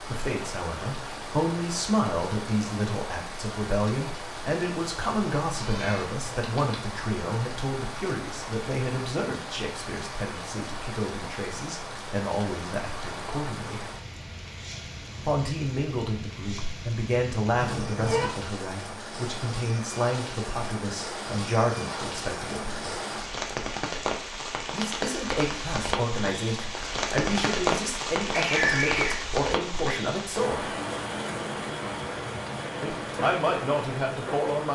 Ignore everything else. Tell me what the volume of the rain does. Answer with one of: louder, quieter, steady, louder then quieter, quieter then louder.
louder.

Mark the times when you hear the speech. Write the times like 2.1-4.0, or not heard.
0.0-13.8, 15.2-23.0, 24.7-30.8, 32.8-34.6.